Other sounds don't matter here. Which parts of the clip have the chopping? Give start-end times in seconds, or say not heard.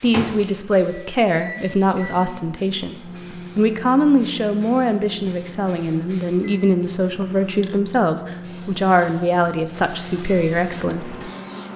not heard.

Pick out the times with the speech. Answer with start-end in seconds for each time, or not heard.
0.0-3.0, 3.5-11.2.